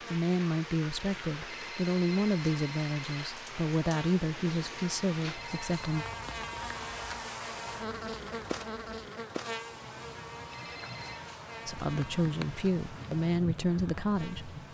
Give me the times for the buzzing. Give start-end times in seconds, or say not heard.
0.0-14.7.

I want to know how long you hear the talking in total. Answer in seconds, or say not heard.
9 s.